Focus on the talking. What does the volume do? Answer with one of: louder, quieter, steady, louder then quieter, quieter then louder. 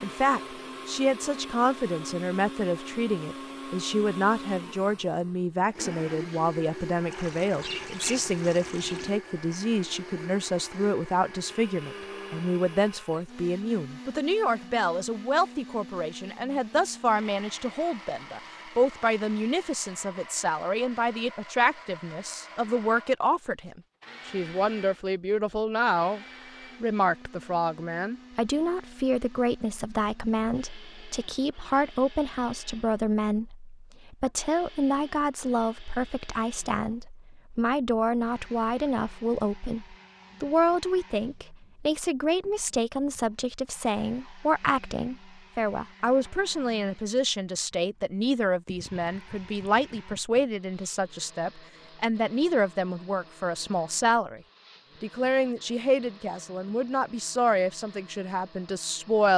steady.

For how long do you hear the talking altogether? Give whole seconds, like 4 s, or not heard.
59 s.